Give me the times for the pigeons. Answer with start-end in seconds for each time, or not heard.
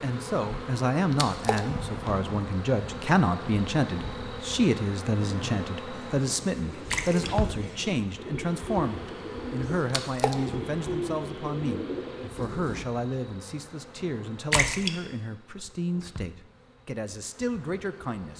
5.9-12.8.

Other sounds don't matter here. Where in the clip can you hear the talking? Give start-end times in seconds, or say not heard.
0.0-18.3.